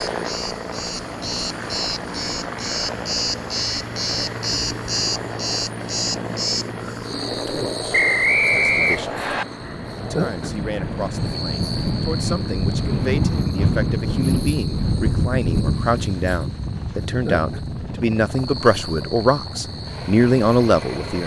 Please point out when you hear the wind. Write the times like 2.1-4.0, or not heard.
9.6-21.2.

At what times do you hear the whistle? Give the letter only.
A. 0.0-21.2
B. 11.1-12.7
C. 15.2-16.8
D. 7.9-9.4
D.